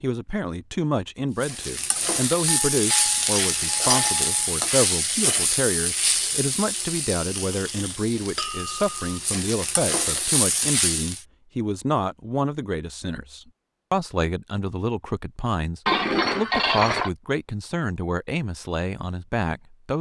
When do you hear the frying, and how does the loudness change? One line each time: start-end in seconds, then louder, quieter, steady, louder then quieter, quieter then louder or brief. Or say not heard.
1.4-11.2 quieter then louder.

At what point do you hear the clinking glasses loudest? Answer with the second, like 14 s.
16 s.